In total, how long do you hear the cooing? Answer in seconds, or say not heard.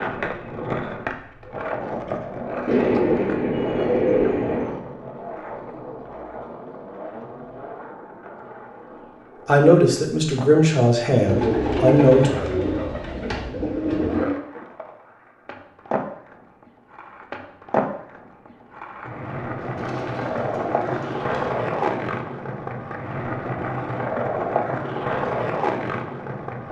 7 s.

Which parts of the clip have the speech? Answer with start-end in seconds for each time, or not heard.
9.4-12.3.